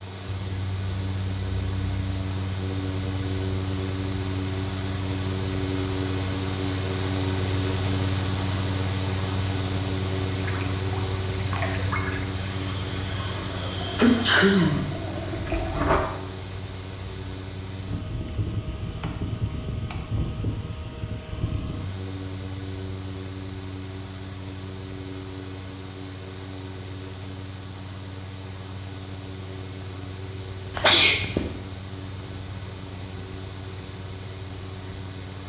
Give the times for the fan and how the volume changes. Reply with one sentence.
The fan can be heard from 0.0 to 35.4 s, getting quieter.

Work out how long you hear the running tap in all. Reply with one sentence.
You can hear the running tap for 6 seconds altogether.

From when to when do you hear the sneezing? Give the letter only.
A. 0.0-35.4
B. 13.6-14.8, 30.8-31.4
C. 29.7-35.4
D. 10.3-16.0
B.